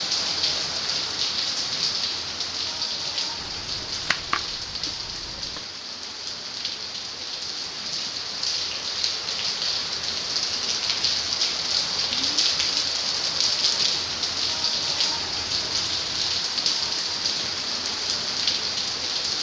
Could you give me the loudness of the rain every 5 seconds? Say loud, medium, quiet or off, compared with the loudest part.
loud, medium, loud, loud.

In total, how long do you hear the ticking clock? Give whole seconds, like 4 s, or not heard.
not heard.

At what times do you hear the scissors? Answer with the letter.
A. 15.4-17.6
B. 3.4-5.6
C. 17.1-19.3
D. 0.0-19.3
B.